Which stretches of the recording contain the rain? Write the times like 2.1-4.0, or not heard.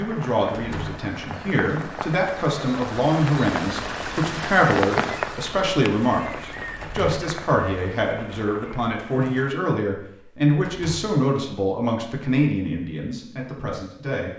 0.0-9.5.